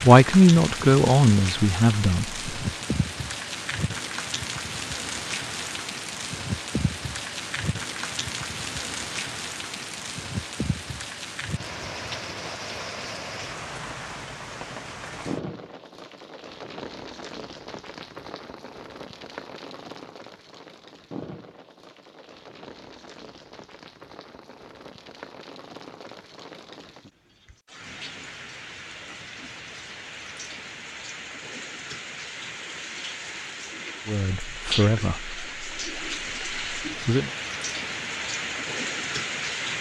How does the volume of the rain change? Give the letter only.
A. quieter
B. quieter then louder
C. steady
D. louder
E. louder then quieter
B.